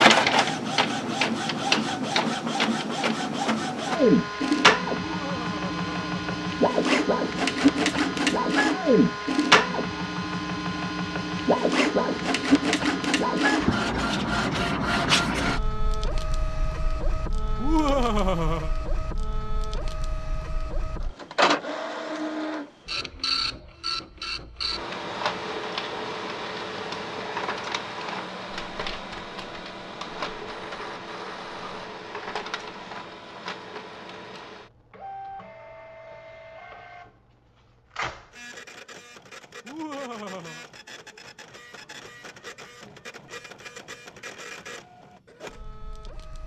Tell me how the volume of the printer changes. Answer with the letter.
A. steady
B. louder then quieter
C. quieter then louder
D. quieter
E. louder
D.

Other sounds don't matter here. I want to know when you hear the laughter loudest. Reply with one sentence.
The volume of the laughter peaks at 18 seconds.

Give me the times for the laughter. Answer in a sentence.
The laughter can be heard from 5.0 to 6.3 s, from 17.6 to 18.7 s and from 39.6 to 40.6 s.